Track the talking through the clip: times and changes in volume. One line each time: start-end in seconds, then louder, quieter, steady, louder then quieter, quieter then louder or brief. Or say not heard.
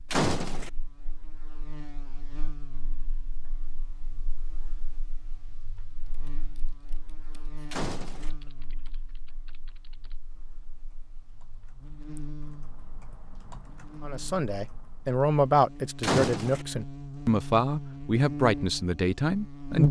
14.0-19.8 steady.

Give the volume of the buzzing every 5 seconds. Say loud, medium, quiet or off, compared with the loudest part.
quiet, quiet, quiet, loud.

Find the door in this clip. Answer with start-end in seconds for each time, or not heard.
0.1-0.7, 7.7-8.3, 16.0-16.6.